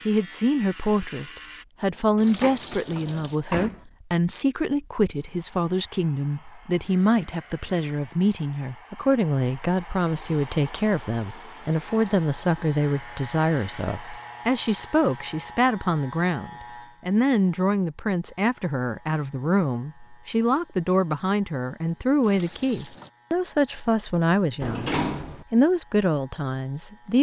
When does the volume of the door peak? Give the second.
25 s.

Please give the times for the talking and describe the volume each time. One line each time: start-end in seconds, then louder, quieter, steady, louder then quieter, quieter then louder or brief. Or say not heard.
0.1-27.1 steady.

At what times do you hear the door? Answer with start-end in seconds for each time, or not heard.
2.4-3.9, 24.6-25.4.